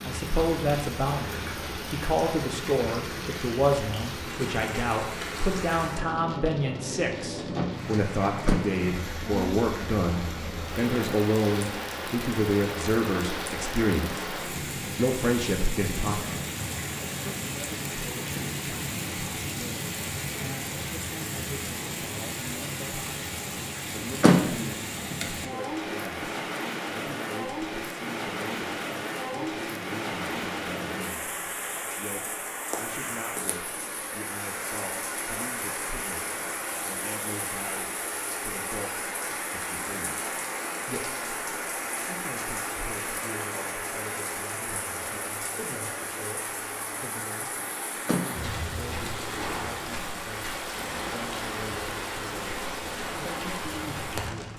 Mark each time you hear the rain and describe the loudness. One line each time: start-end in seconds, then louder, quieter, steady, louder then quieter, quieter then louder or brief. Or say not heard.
0.0-54.5 steady.